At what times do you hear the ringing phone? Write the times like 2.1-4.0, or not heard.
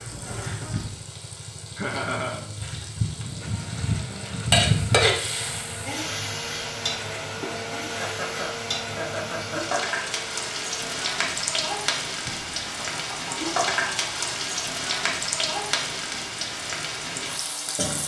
not heard.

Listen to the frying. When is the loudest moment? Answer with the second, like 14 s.
5 s.